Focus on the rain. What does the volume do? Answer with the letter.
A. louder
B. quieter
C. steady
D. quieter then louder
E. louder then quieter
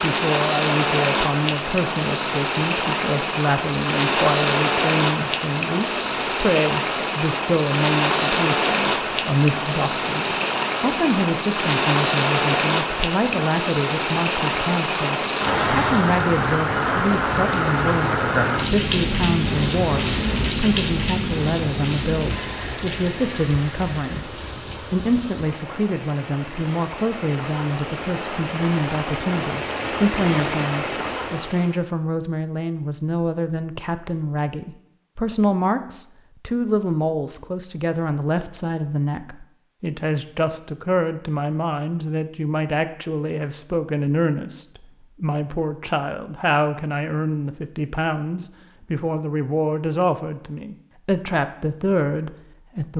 B.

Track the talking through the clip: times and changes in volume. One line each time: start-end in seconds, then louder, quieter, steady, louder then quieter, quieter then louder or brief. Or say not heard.
0.0-52.9 steady.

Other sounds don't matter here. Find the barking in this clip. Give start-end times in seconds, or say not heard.
not heard.